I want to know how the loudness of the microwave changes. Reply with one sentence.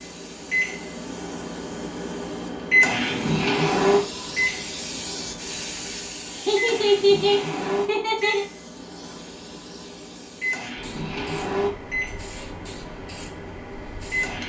The volume of the microwave goes down.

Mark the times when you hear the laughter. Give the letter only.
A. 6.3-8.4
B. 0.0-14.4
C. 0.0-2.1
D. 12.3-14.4
A.